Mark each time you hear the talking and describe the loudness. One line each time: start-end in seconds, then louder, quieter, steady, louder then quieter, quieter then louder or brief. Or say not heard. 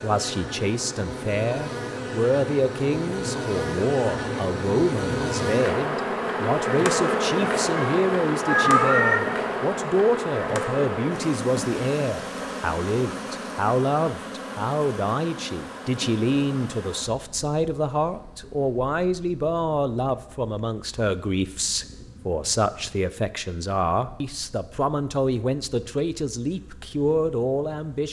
0.0-28.0 steady.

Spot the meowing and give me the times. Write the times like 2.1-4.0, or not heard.
7.8-9.2.